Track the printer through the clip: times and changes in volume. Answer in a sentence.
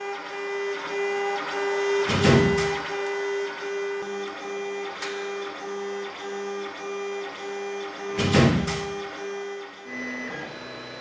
You can hear the printer from 0.0 to 10.9 s, getting quieter.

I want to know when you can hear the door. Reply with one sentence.
The door can be heard from 2.0 to 2.7 s and from 8.1 to 8.8 s.